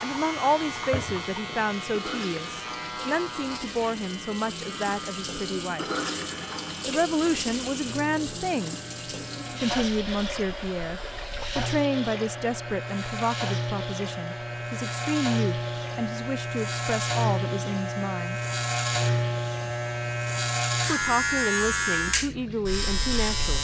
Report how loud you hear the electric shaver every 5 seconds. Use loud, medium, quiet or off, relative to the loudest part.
medium, quiet, medium, loud, loud.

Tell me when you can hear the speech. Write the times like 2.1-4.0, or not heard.
0.0-5.8, 6.8-8.8, 9.6-18.4, 20.9-23.5.